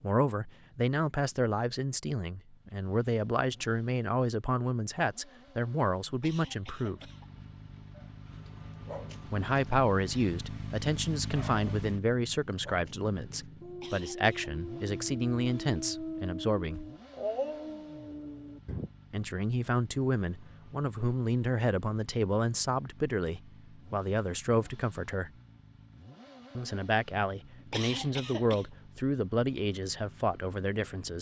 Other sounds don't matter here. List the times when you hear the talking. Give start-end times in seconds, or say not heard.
0.0-7.0, 9.3-16.9, 19.1-25.3, 26.6-31.1.